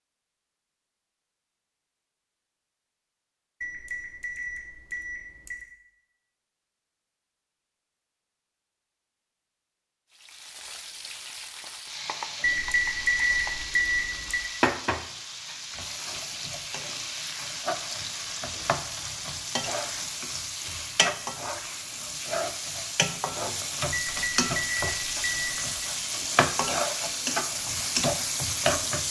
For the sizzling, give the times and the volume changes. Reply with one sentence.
The sizzling can be heard from 10.1 to 29.0 s, getting louder.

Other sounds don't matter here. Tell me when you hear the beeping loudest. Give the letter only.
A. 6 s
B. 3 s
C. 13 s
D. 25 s
C.